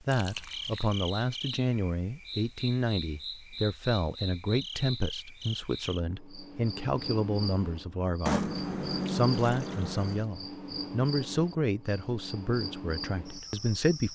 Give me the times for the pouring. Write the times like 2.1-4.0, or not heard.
0.1-0.8, 8.2-10.2.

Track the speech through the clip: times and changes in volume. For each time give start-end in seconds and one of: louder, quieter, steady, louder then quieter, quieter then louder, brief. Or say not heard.
0.0-14.1 steady.